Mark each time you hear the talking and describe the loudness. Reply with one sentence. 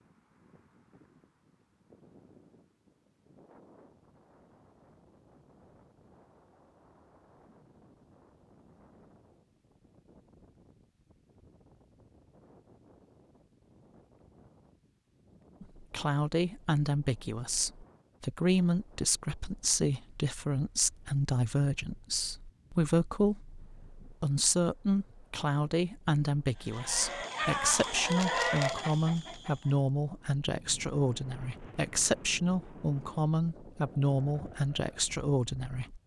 The talking can be heard from 15.6 to 36.0 s, at a steady volume.